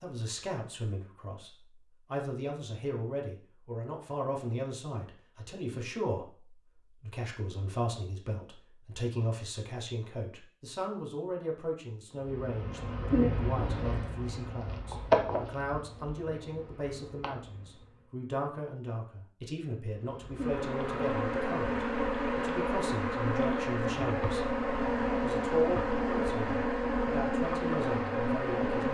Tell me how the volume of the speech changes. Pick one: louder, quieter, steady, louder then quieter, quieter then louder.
steady.